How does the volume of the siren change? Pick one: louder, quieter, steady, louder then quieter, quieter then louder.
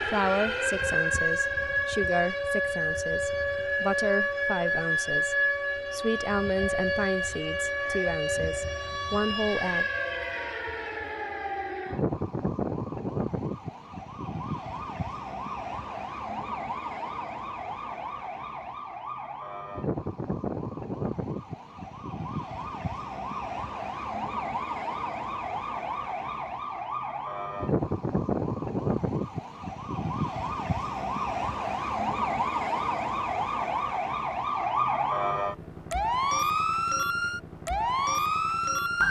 quieter then louder.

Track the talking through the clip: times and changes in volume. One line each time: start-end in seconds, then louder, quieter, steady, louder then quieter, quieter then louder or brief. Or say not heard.
0.1-9.8 steady.